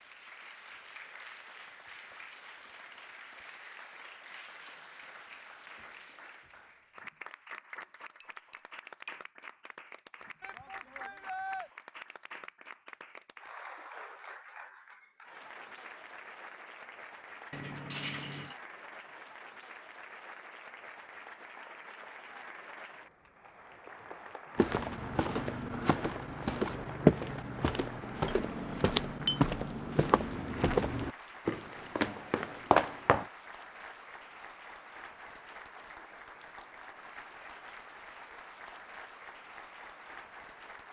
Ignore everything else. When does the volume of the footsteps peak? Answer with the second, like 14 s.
27 s.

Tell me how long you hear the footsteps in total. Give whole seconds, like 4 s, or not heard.
9 s.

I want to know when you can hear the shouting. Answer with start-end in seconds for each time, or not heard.
10.4-11.7.